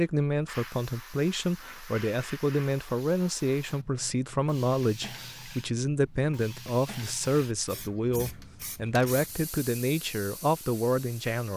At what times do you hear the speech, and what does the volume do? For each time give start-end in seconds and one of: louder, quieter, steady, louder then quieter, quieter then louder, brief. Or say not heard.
0.0-11.5 steady.